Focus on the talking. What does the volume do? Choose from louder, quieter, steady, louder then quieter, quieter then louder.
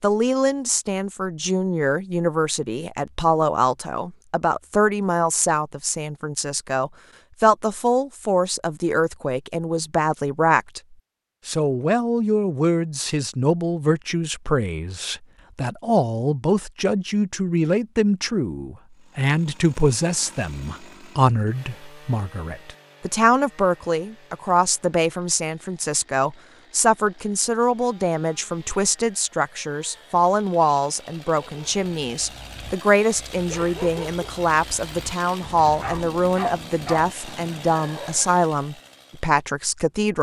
steady.